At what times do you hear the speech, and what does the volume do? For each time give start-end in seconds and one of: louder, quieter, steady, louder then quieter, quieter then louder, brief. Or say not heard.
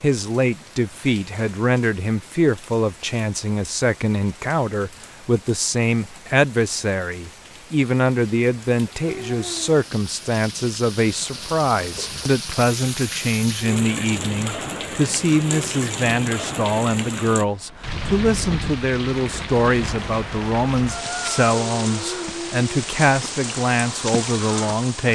0.0-25.1 steady.